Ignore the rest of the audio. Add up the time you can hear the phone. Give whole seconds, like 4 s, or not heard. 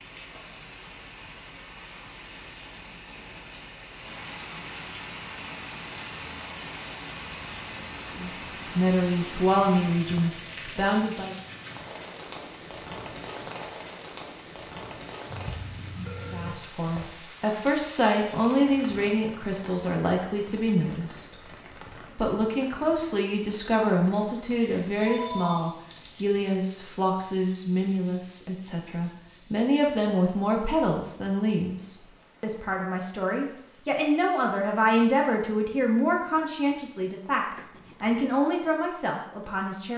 3 s.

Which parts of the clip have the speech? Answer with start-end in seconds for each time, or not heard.
8.1-11.3, 16.3-21.4, 22.1-39.9.